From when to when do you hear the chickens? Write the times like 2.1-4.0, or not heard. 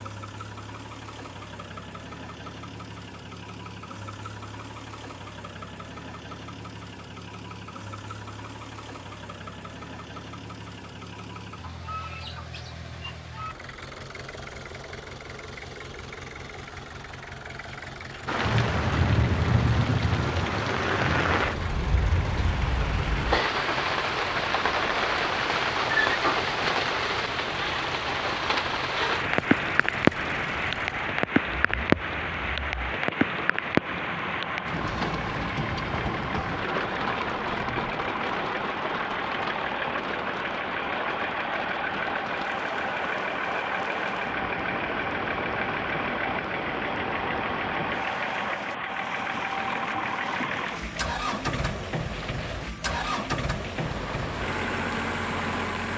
11.6-13.6.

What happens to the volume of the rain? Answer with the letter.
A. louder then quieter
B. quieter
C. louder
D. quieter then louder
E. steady
B.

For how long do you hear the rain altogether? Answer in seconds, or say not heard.
38 s.